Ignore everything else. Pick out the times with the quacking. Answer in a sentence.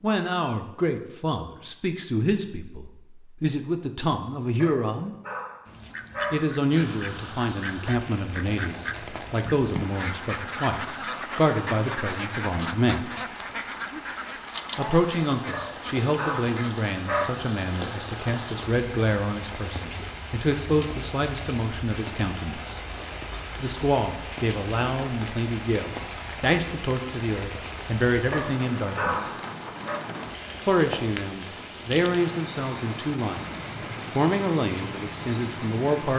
The quacking can be heard from 5.7 to 16.9 s.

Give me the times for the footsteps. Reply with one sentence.
You can't hear the footsteps here.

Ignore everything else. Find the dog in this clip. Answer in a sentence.
The dog can be heard from 4.5 to 6.7 s, from 15.5 to 17.4 s and from 28.3 to 30.1 s.